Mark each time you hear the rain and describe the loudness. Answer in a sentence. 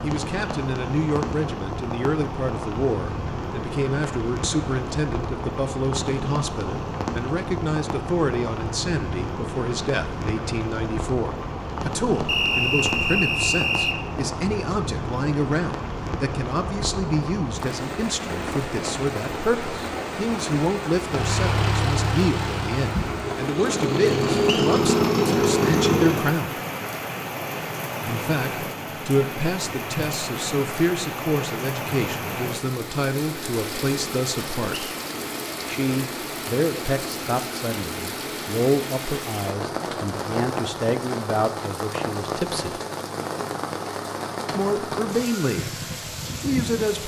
You can hear the rain from 0.0 to 47.0 s, at a steady volume.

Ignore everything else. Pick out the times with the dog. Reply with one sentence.
You can't hear the dog here.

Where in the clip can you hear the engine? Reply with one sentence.
You can hear the engine from 21.1 to 26.3 s.